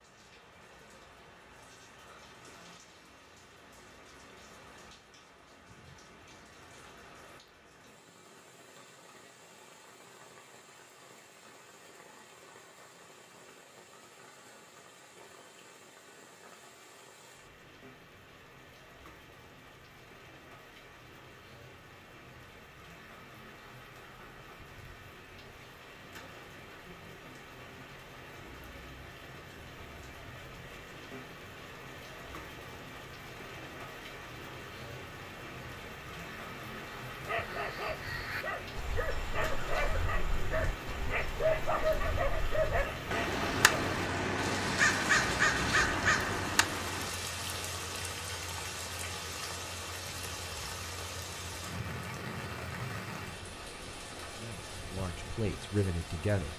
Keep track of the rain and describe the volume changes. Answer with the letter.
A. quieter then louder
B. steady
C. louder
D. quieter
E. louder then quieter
C.